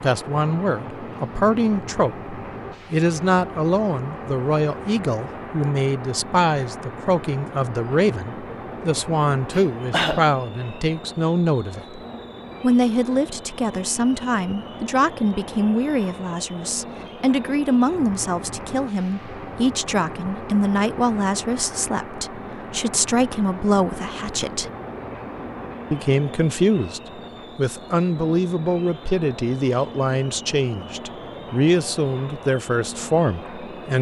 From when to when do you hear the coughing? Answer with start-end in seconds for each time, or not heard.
9.5-10.3.